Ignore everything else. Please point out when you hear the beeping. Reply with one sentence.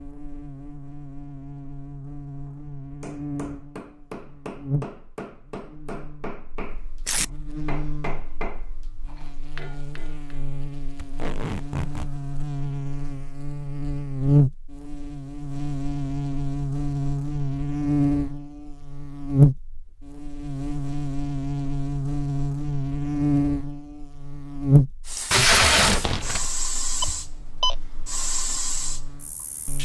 The beeping can be heard from 27.0 to 27.8 s.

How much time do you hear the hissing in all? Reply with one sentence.
You can hear the hissing for 5 seconds altogether.